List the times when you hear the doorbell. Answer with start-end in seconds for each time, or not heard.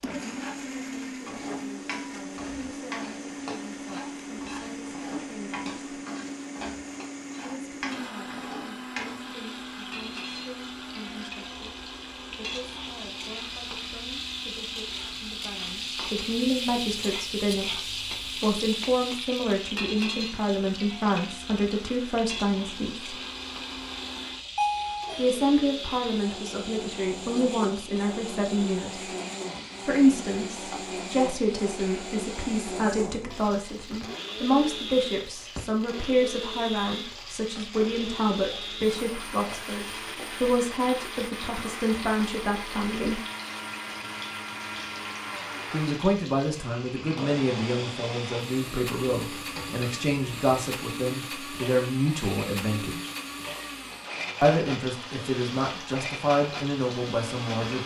24.6-25.3.